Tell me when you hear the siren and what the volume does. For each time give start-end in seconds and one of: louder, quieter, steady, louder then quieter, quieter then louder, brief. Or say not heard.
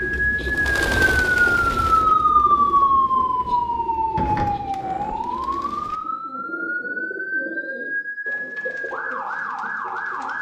0.0-10.3 quieter.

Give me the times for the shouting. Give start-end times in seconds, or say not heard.
not heard.